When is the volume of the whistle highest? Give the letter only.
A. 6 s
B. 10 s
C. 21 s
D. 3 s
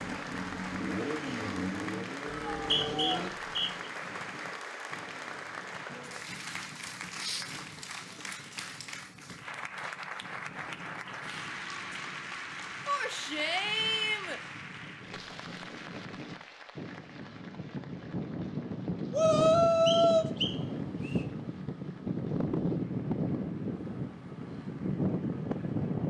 D.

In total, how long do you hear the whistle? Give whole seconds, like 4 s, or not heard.
3 s.